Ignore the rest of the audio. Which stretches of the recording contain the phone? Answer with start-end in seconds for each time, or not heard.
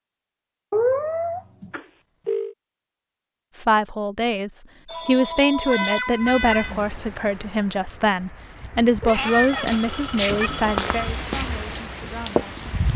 1.7-2.5, 4.8-6.0, 9.1-11.1.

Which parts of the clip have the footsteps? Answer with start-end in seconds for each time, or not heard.
9.1-12.8.